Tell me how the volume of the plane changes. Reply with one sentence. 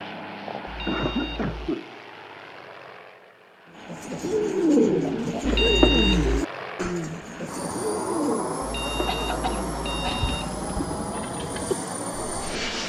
The loudness of the plane goes up.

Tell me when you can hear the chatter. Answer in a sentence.
The chatter can't be heard in this clip.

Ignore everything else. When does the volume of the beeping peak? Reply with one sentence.
The volume of the beeping peaks at 6 seconds.